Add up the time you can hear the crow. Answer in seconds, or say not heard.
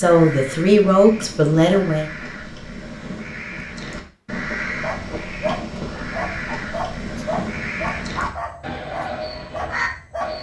10 s.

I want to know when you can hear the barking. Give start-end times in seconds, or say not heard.
4.8-10.3.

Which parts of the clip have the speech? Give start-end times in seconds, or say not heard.
0.0-2.0.